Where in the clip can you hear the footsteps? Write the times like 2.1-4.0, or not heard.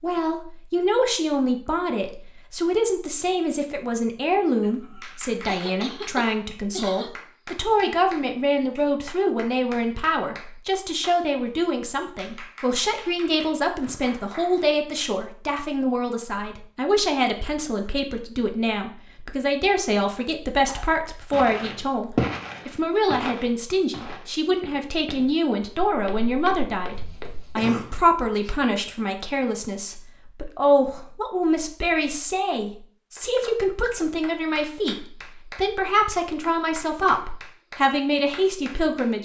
21.3-27.6.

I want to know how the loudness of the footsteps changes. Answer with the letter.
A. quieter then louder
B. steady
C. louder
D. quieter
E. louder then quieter
D.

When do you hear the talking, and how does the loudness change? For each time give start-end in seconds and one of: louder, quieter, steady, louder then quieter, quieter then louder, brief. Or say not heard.
0.0-39.2 steady.